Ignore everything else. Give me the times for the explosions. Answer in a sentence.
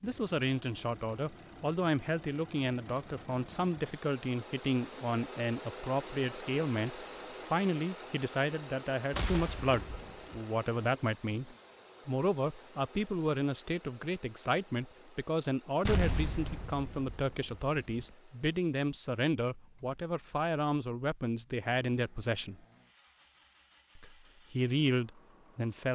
You can hear the explosions from 9.1 to 10.4 s and from 15.8 to 18.1 s.